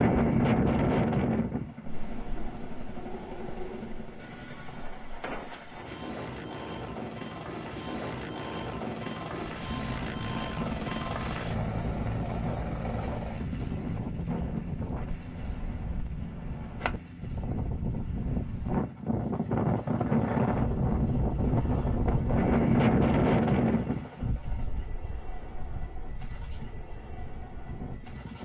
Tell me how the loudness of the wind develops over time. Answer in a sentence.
The loudness of the wind goes down, then up.